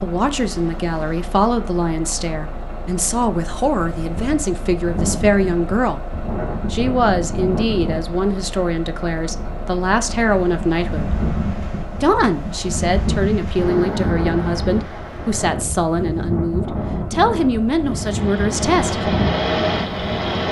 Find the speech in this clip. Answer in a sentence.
You can hear the speech from 0.0 to 6.1 s, from 6.7 to 11.2 s and from 12.0 to 19.1 s.